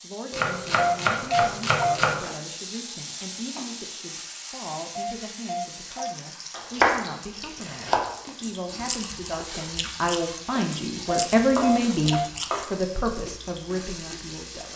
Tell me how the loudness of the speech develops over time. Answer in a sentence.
The volume of the speech goes up.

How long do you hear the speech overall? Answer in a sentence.
You can hear the speech for 15 seconds altogether.